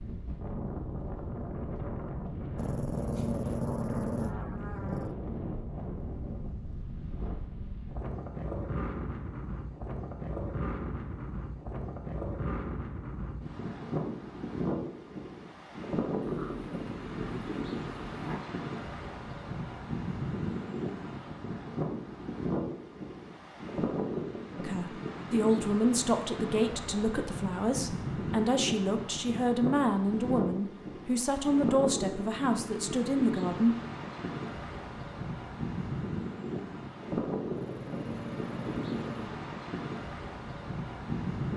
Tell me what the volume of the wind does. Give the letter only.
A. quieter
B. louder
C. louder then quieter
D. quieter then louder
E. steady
E.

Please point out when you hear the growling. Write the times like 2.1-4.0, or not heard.
2.5-5.2, 16.2-18.4, 37.5-39.4.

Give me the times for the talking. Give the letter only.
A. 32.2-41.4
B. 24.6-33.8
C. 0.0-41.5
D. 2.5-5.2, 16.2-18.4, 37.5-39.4
B.